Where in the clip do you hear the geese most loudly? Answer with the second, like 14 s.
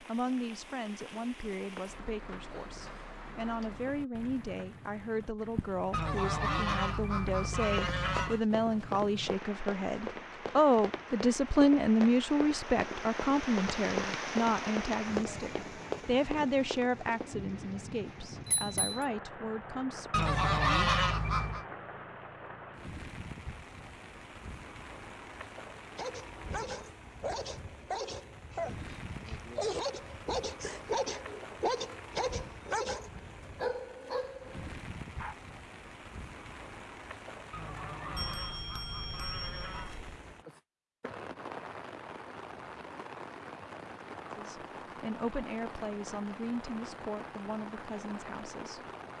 21 s.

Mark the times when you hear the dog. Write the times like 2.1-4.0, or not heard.
25.8-35.4.